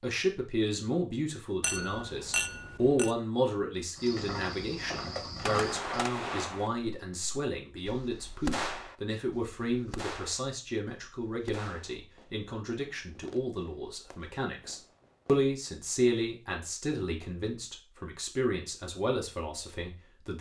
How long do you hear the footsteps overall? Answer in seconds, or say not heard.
2 s.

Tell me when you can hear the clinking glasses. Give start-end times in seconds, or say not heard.
1.6-3.1.